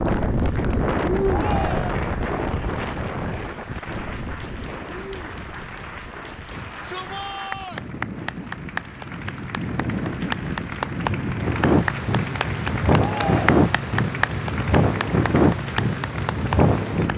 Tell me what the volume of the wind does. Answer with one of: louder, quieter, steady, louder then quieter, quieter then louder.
quieter then louder.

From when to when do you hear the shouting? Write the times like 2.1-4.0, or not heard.
1.2-1.9, 6.5-7.8, 12.9-13.6.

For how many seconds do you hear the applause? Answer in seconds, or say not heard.
17 s.